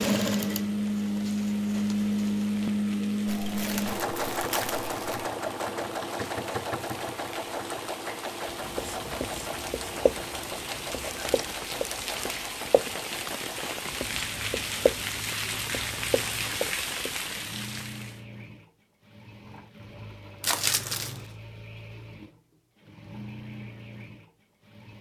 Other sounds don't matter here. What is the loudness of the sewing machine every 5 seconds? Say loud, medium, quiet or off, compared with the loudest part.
loud, medium, quiet, quiet, quiet.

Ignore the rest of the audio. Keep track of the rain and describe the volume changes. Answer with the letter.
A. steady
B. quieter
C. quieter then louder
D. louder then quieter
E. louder
E.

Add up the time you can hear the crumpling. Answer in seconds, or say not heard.
4 s.